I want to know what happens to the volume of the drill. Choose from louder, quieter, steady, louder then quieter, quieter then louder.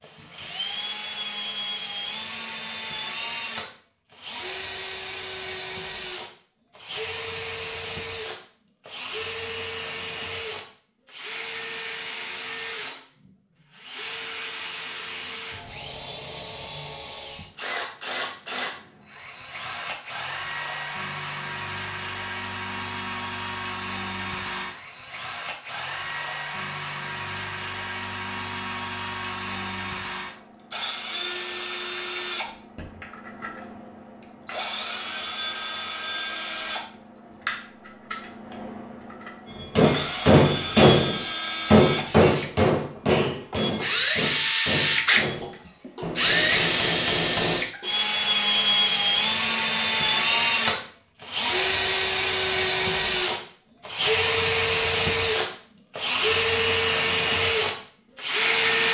louder.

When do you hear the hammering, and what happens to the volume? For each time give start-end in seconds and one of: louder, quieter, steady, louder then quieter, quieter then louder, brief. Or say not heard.
39.6-47.6 quieter.